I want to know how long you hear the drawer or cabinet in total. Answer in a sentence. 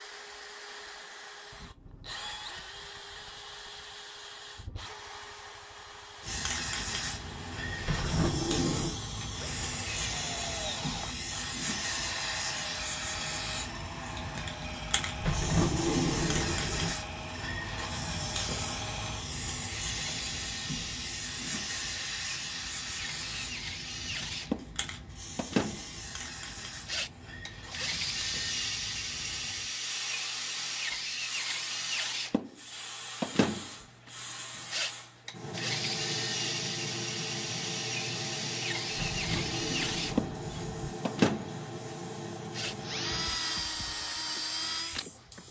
You can hear the drawer or cabinet for 5 seconds altogether.